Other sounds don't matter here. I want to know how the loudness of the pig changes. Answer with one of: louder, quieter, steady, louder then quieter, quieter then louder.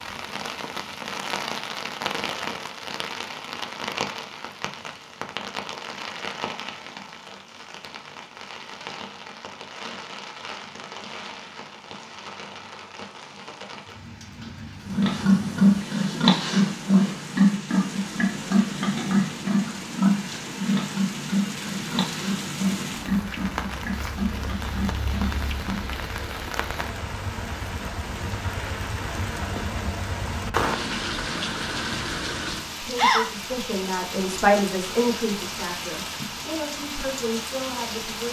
quieter.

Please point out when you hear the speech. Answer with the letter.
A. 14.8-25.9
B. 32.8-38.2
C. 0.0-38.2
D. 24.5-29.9
B.